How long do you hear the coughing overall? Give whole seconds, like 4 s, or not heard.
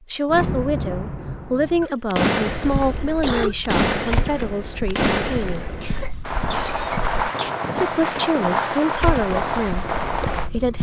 4 s.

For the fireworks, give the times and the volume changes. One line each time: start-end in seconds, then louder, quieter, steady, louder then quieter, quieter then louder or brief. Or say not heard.
0.2-10.5 steady.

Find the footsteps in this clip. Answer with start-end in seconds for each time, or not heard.
2.5-7.2, 8.9-10.7.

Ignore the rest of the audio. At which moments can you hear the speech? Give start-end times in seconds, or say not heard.
0.1-5.7, 7.8-10.7.